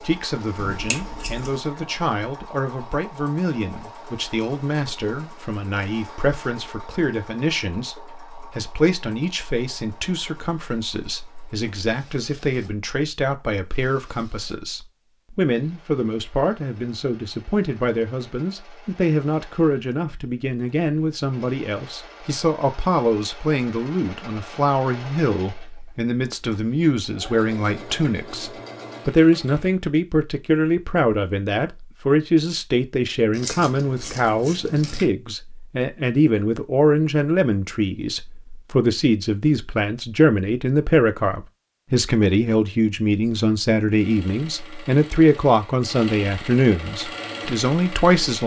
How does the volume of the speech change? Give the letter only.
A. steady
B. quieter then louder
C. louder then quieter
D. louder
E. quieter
D.